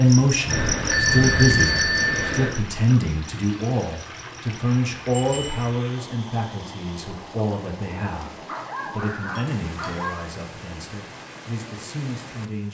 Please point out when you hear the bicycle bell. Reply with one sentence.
You can hear the bicycle bell from 0.5 to 2.5 s, from 5.1 to 5.7 s and from 9.3 to 10.1 s.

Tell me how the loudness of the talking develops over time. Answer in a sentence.
The loudness of the talking goes down.